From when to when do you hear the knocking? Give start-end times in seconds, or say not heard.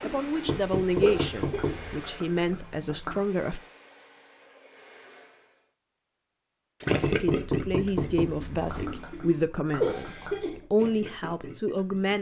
0.5-2.0, 7.0-8.9.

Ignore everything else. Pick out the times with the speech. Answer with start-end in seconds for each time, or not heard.
0.0-3.6, 7.2-12.1.